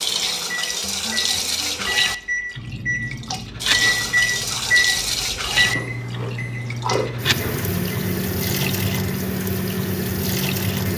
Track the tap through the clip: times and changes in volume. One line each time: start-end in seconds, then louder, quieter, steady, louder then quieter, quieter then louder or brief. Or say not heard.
0.0-10.9 steady.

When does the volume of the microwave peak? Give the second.
4 s.